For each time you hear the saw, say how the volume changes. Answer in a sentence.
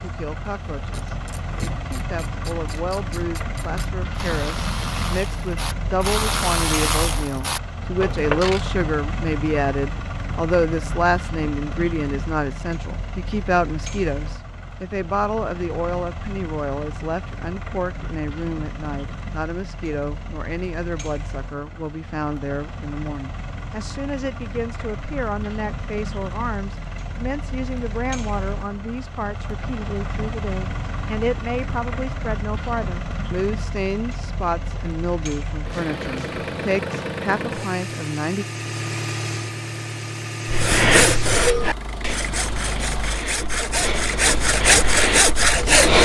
You can hear the saw from 40.5 to 46.0 s, getting quieter then louder.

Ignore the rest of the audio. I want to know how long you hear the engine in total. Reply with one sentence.
The engine can be heard for 46 seconds in total.